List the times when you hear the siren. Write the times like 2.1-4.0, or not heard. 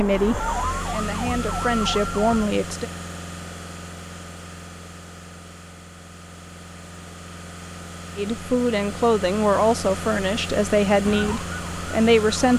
0.0-2.5, 11.1-12.5.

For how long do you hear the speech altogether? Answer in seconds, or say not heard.
7 s.